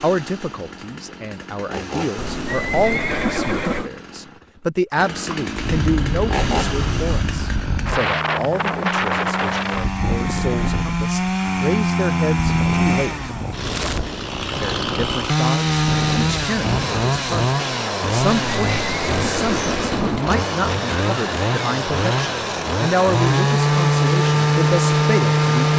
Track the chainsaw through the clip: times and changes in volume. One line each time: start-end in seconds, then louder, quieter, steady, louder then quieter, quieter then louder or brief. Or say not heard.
0.0-25.7 louder.